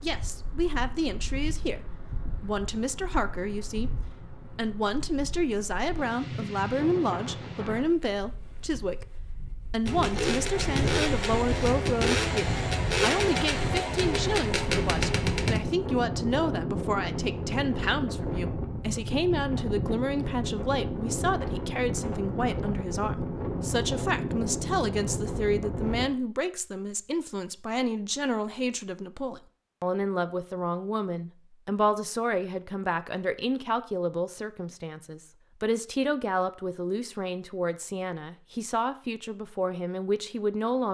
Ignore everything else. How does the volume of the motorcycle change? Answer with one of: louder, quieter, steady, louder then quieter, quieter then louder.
steady.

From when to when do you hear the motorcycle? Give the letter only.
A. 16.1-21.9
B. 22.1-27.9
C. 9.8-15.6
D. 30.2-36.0
C.